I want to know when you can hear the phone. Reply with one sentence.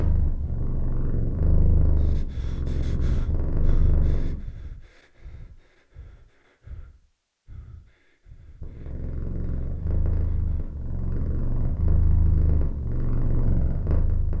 The phone can't be heard in this clip.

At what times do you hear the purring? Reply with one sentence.
You can hear the purring from 0.0 to 4.4 s and from 8.6 to 14.3 s.